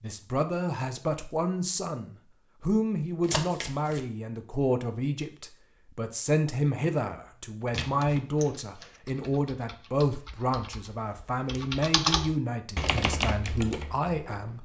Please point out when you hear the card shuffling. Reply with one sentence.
You can hear the card shuffling from 3.2 to 4.0 s and from 7.7 to 8.5 s.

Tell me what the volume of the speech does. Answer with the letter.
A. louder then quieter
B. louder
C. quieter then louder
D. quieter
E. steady
E.